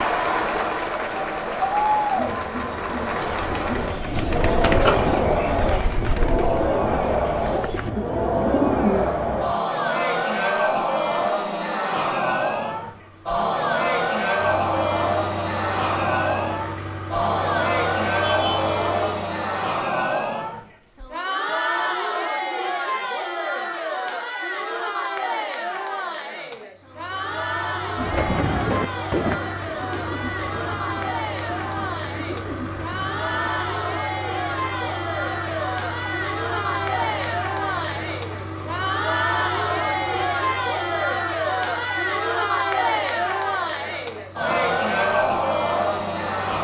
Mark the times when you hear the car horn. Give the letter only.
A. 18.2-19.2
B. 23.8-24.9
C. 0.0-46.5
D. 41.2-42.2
A.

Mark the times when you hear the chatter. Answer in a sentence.
The chatter can be heard from 0.0 to 46.5 s.